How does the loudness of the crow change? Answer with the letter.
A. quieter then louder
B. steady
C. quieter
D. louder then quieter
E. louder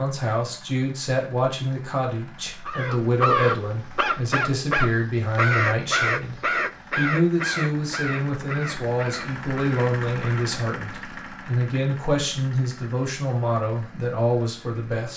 C.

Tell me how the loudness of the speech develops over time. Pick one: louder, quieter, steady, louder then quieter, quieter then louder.
steady.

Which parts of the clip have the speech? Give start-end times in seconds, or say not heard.
0.0-15.1.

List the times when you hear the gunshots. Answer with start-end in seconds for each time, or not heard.
not heard.